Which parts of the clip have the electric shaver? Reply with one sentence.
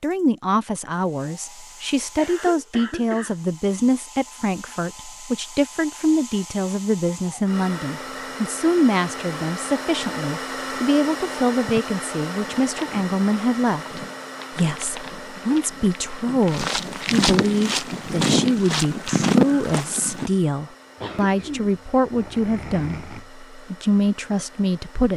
The electric shaver can't be heard in this clip.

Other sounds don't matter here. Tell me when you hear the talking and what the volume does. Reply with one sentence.
The talking can be heard from 0.0 to 25.1 s, at a steady volume.